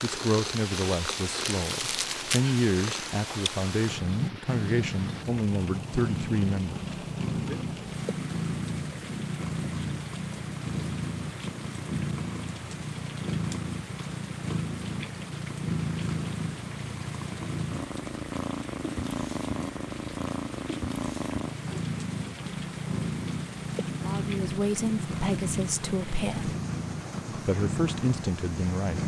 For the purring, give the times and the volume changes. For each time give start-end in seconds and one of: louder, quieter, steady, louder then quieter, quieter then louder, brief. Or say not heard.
0.0-29.0 steady.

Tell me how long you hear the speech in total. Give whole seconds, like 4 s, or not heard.
12 s.